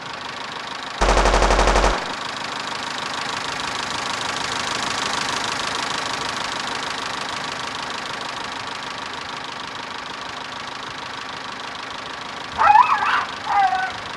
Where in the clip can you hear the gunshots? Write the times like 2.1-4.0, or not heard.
1.0-2.1.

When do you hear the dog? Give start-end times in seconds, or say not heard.
12.6-13.9.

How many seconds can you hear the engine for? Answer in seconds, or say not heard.
14 s.